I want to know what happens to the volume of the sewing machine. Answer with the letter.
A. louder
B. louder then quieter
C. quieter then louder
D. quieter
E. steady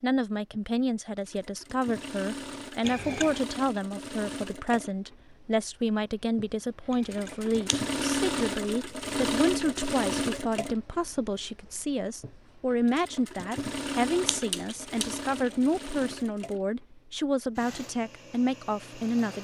B.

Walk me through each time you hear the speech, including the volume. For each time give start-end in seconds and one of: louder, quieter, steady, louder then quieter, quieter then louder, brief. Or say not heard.
0.0-19.3 steady.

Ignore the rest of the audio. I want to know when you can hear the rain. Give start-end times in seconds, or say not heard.
not heard.